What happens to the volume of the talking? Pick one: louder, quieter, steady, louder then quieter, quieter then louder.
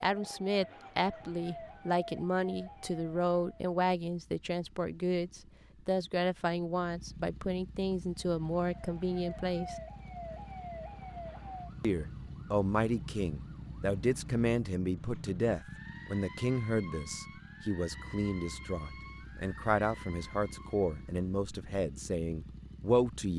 steady.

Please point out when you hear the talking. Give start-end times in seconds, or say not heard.
0.0-9.8, 11.8-23.3.